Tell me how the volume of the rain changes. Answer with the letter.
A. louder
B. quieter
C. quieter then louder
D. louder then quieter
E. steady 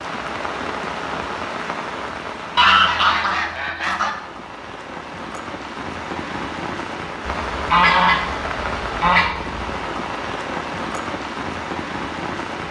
C.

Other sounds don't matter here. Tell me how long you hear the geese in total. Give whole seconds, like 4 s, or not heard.
4 s.